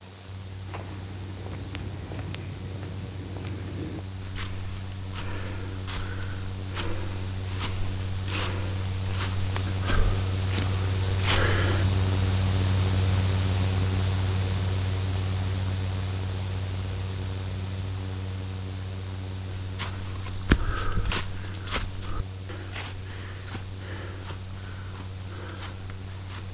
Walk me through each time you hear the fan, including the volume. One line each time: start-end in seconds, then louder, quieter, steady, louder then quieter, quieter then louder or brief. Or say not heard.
0.0-26.4 louder then quieter.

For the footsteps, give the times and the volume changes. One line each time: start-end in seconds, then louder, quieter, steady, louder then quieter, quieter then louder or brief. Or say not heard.
0.7-11.8 louder
19.4-26.4 quieter.